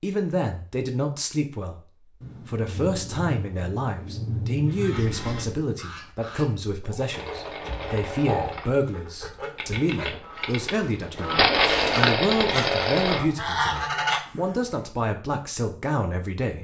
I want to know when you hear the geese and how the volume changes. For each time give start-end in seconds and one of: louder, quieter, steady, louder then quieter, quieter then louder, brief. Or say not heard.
4.7-14.8 louder.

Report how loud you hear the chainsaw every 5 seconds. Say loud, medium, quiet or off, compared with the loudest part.
off, medium, loud, off.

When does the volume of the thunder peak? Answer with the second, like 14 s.
4 s.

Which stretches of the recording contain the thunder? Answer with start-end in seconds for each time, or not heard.
2.2-5.6.